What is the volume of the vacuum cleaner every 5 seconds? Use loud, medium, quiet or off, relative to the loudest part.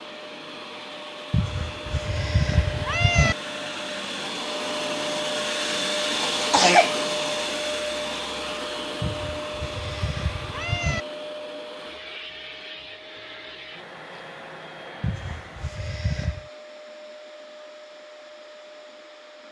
medium, loud, medium, quiet.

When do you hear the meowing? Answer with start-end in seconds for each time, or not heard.
1.3-3.4, 9.0-11.0, 15.0-16.4.